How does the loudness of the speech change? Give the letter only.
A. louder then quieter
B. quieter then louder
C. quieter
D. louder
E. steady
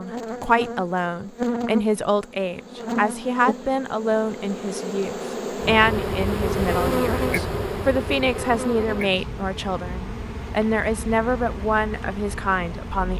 E.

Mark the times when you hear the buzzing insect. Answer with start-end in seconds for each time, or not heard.
0.0-13.1.